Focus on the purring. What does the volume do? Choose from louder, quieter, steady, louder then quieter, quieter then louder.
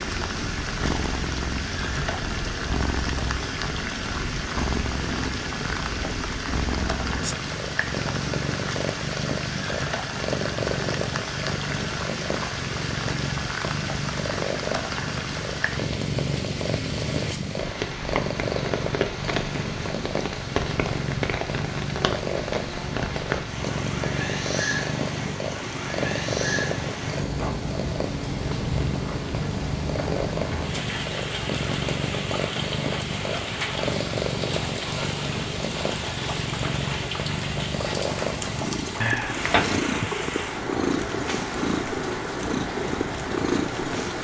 steady.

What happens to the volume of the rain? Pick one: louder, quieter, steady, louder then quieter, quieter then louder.
steady.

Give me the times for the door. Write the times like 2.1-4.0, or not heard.
39.0-40.1.